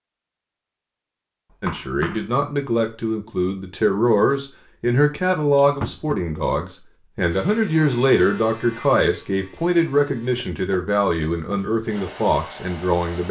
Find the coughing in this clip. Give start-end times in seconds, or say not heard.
not heard.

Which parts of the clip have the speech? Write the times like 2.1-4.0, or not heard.
1.6-13.2.